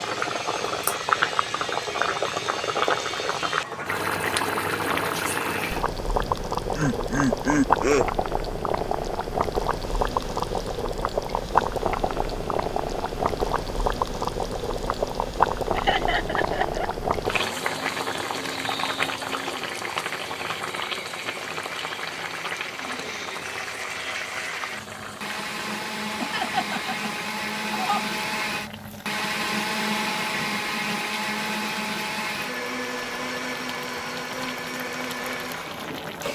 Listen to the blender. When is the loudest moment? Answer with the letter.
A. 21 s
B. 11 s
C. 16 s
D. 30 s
D.